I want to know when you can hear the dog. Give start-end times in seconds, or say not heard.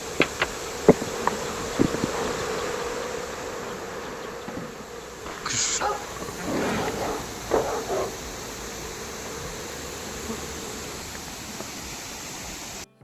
5.2-8.2.